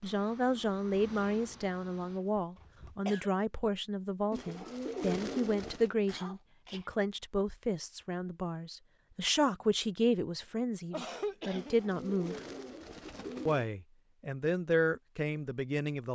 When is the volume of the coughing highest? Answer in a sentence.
The loudest moment of the coughing is at 11 seconds.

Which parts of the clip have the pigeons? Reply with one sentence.
You can hear the pigeons from 4.3 to 5.9 s and from 11.6 to 13.7 s.